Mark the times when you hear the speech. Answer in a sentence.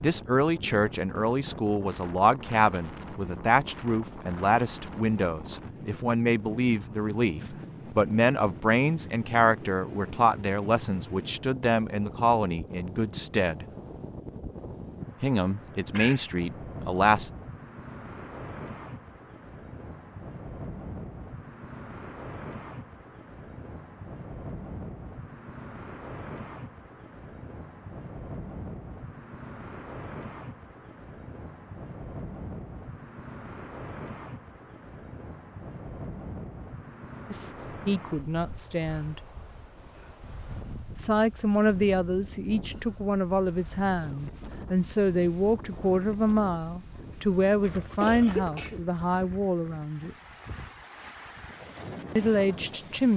You can hear the speech from 0.0 to 13.7 s, from 15.2 to 17.3 s, from 37.3 to 39.2 s, from 41.0 to 50.1 s and from 52.1 to 53.1 s.